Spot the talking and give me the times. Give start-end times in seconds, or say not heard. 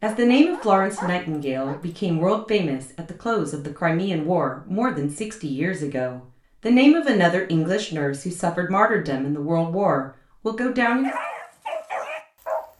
0.0-11.1.